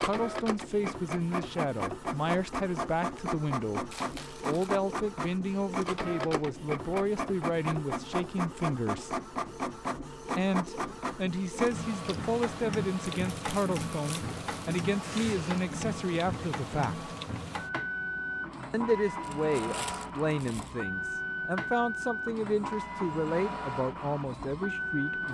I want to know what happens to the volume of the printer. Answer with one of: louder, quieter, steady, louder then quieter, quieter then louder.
steady.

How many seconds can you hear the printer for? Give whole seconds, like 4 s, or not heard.
25 s.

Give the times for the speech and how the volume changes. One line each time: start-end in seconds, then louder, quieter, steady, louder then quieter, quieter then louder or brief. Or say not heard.
0.0-9.2 steady
10.3-17.1 steady
18.7-25.2 steady.